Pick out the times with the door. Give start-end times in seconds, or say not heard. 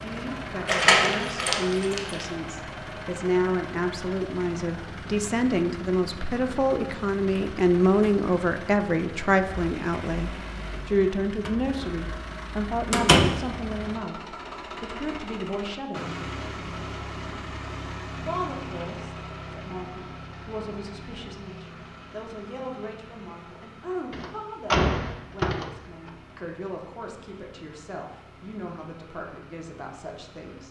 0.7-2.2, 12.9-13.3, 24.1-26.1.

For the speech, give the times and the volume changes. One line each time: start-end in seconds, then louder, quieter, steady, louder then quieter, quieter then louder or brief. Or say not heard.
0.0-16.2 louder then quieter
18.2-30.6 steady.